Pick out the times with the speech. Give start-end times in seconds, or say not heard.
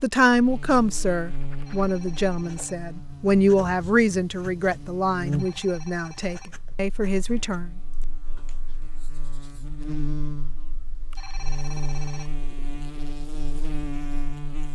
0.0-7.7.